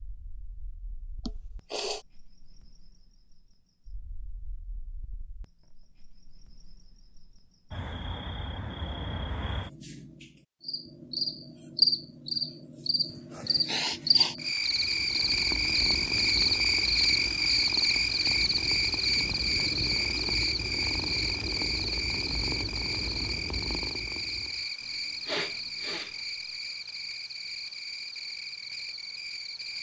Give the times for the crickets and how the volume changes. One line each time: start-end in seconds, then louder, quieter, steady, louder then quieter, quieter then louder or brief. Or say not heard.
0.0-29.7 louder then quieter.